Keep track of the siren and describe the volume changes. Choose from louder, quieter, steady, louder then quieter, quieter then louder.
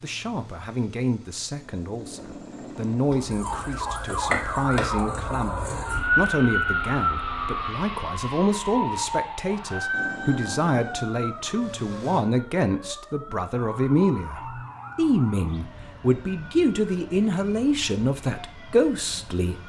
quieter.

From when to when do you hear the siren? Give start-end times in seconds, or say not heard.
2.9-19.6.